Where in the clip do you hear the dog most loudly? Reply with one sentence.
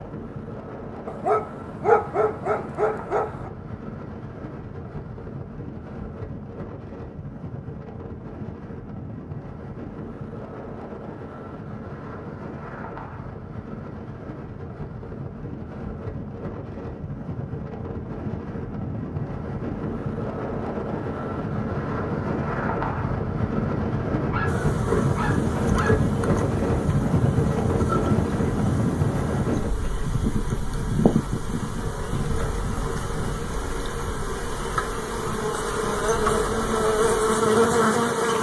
The loudest moment of the dog is at 2 seconds.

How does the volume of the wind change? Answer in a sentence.
The loudness of the wind goes up, then down.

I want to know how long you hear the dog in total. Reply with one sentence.
The dog can be heard for 4 seconds in total.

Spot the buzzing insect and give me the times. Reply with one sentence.
The buzzing insect can be heard from 24.4 to 38.3 s.